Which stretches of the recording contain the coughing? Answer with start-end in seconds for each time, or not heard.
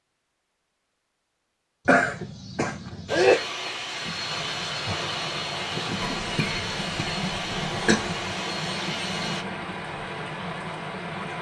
1.9-3.5, 6.0-8.0.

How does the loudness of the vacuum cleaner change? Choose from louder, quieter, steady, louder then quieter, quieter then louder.
steady.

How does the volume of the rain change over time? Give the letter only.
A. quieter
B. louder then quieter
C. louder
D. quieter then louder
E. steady
E.